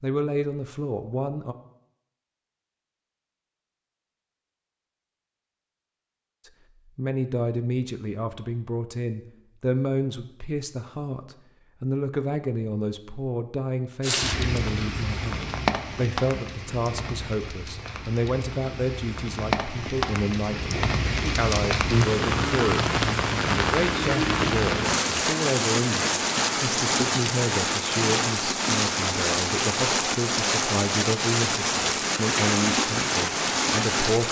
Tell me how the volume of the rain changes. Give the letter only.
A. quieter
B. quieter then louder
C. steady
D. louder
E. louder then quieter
D.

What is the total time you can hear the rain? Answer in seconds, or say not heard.
20 s.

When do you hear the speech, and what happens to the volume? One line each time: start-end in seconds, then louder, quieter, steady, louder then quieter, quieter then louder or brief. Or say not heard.
0.0-1.6 brief
6.5-34.2 steady.